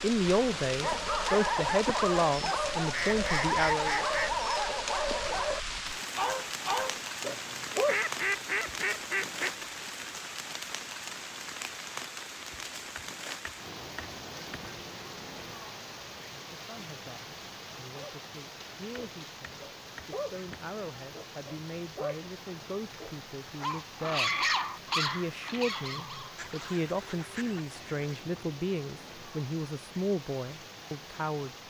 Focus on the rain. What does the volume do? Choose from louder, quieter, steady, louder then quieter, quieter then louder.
quieter.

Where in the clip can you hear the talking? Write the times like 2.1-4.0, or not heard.
0.0-4.0, 16.3-31.5.